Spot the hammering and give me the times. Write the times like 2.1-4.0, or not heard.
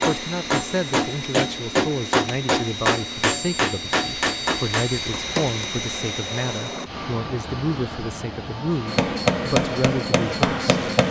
0.0-5.7, 8.8-11.0.